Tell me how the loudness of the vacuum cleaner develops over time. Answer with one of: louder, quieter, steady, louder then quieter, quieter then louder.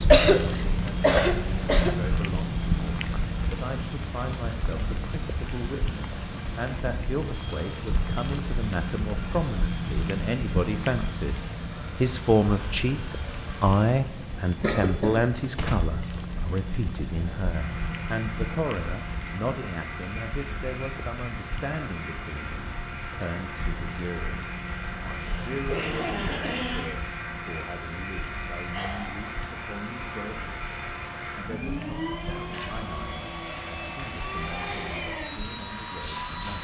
louder.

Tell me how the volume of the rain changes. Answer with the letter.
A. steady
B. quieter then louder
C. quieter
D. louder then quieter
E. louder
C.